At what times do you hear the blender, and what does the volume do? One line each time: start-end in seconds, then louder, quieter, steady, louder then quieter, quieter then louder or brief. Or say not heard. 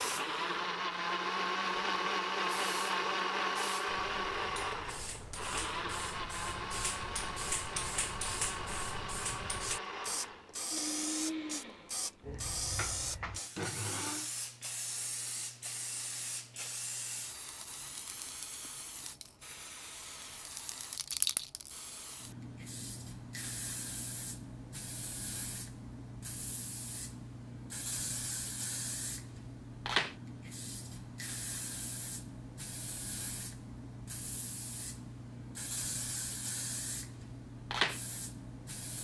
0.0-14.3 quieter.